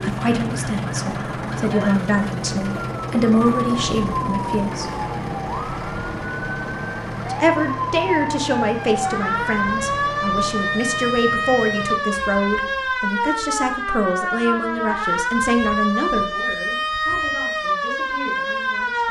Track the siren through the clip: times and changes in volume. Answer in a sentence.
You can hear the siren from 0.0 to 19.0 s, getting louder.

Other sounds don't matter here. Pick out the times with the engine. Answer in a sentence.
The engine can be heard from 0.0 to 13.0 s.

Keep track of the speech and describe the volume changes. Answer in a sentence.
The loudness of the speech goes down.